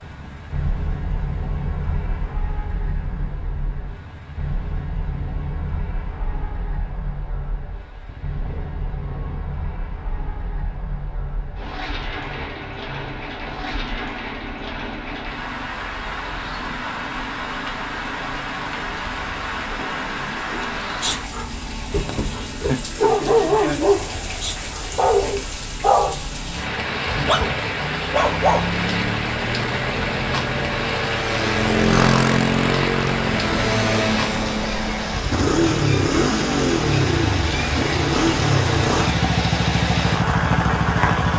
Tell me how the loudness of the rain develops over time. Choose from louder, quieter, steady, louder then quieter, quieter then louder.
louder.